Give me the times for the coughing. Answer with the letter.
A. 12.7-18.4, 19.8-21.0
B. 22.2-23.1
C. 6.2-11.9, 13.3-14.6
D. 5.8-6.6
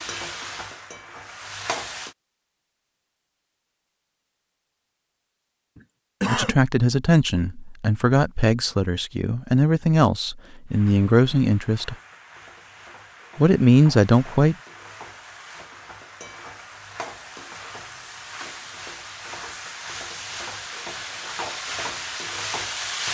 D.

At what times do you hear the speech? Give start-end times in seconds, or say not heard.
6.2-11.9, 13.3-14.6.